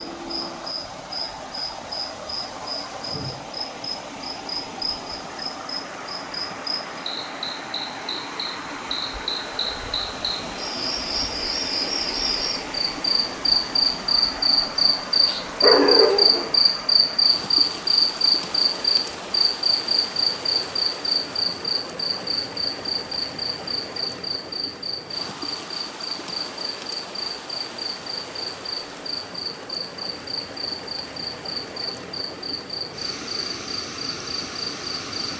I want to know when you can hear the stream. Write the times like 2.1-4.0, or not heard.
0.0-35.3.